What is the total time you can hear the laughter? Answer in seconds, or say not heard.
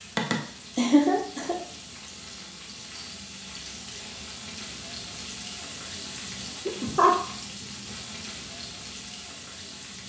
2 s.